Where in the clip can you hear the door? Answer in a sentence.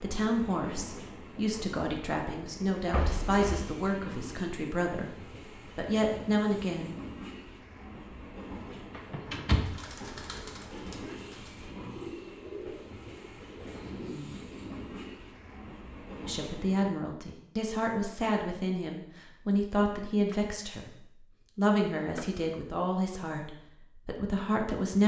You can hear the door from 2.9 to 3.7 s, from 8.9 to 9.8 s and from 22.0 to 22.4 s.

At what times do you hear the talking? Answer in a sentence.
The talking can be heard from 0.0 to 5.2 s, from 5.8 to 7.0 s, from 16.1 to 20.9 s and from 21.6 to 25.0 s.